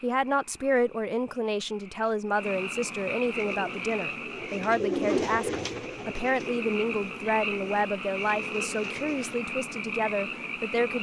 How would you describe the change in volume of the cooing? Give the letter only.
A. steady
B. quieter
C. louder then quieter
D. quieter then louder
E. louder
C.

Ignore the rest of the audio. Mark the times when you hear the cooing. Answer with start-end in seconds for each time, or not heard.
3.4-9.3.